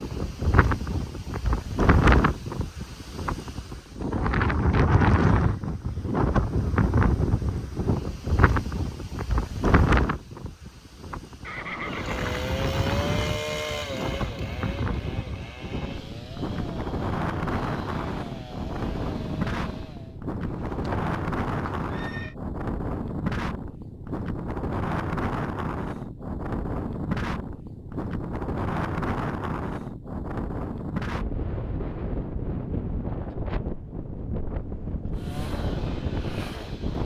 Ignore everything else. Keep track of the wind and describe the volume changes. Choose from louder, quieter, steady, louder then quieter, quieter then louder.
quieter.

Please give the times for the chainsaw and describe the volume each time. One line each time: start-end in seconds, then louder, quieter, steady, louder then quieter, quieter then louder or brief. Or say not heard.
11.8-20.2 quieter
35.1-37.0 brief.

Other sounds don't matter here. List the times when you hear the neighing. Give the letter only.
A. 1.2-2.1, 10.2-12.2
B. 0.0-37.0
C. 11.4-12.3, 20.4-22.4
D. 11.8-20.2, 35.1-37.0
C.